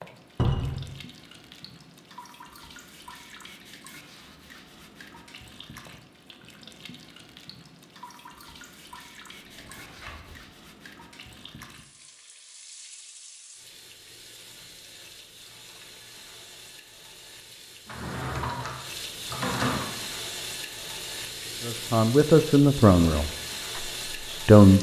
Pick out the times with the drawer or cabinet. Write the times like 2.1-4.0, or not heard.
0.3-0.8, 9.3-10.4, 17.9-19.9.